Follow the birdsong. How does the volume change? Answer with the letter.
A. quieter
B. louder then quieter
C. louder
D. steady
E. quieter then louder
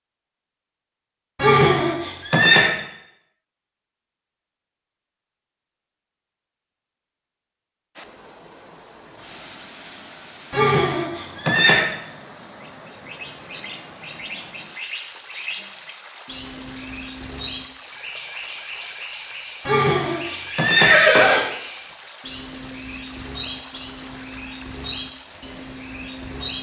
D.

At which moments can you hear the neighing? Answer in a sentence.
You can hear the neighing from 1.4 to 2.7 s, from 10.5 to 11.8 s and from 19.6 to 21.4 s.